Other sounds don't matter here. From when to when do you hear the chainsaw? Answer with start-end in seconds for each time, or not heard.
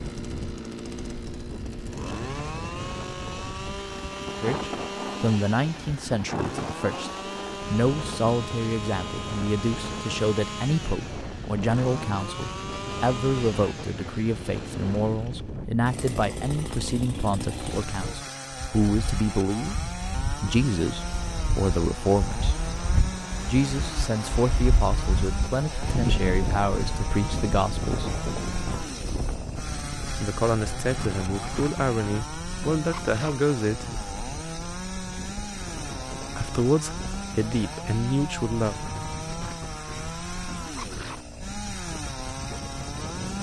0.0-43.3.